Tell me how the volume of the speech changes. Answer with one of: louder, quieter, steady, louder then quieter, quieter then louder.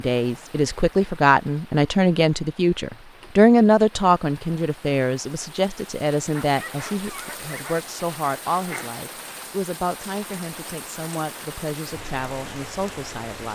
quieter.